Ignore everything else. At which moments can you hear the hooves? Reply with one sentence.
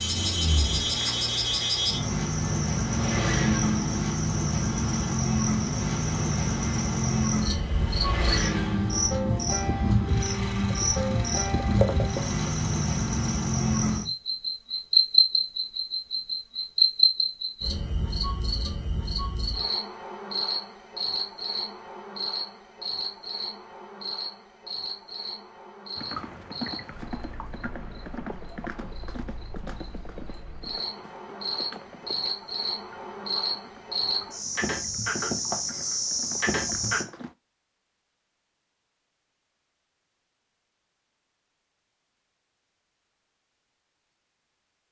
The hooves can be heard from 25.9 to 37.4 s.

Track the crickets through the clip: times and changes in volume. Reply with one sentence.
You can hear the crickets from 0.0 to 37.0 s, getting quieter then louder.